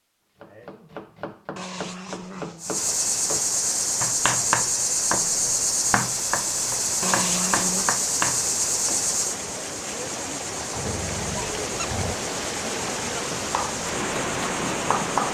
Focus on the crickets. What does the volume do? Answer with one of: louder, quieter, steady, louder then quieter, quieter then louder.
quieter.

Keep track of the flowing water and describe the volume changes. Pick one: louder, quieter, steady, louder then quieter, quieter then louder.
louder.